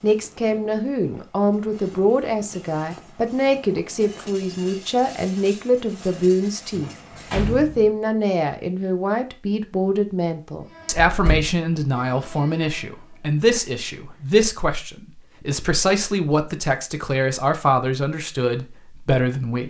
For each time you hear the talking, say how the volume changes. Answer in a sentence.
You can hear the talking from 0.0 to 19.6 s, at a steady volume.